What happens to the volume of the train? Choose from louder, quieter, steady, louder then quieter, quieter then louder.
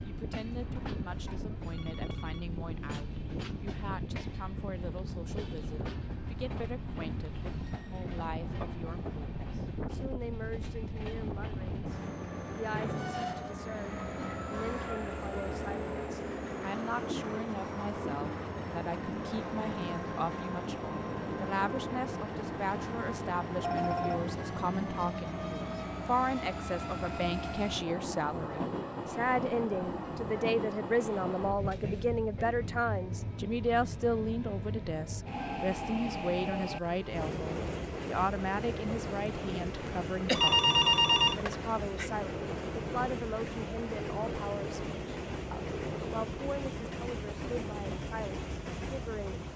steady.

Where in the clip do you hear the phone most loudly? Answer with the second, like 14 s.
41 s.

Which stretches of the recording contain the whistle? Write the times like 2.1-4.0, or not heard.
not heard.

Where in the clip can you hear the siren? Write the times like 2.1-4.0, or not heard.
not heard.